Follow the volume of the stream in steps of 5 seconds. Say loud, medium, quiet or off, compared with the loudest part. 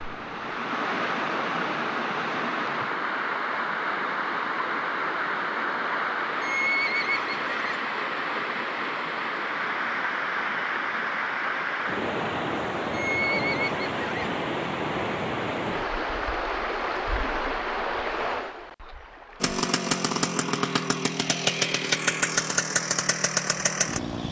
loud, loud, loud, loud, quiet.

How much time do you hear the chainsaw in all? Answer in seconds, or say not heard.
5 s.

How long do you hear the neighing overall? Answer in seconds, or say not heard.
3 s.